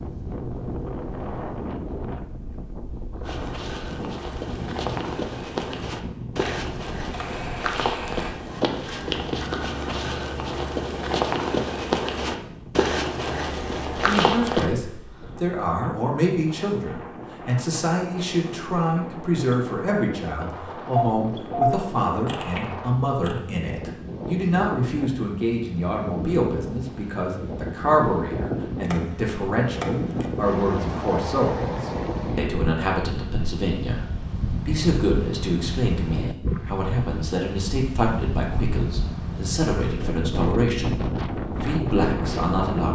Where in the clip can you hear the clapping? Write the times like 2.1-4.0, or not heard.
not heard.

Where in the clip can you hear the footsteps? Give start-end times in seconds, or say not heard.
3.2-14.7.